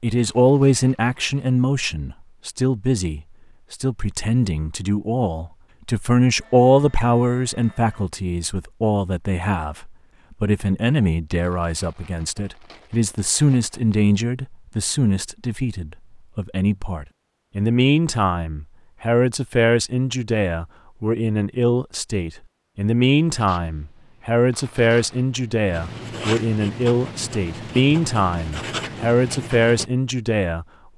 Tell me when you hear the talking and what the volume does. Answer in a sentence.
You can hear the talking from 0.0 to 30.9 s, at a steady volume.